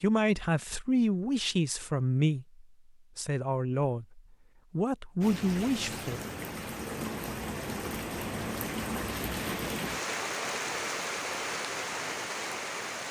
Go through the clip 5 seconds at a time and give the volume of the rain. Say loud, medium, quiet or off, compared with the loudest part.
off, loud, loud.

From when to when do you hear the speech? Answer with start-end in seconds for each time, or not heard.
0.0-6.2.